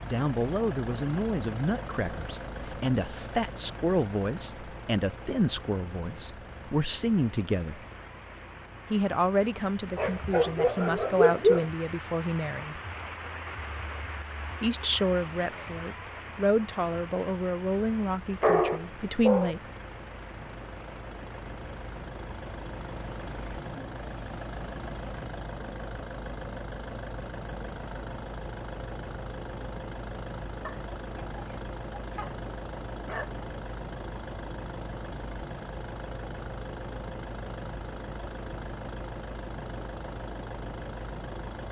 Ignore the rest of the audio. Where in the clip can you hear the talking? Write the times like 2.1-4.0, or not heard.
0.0-7.8, 8.9-12.8, 14.6-19.6.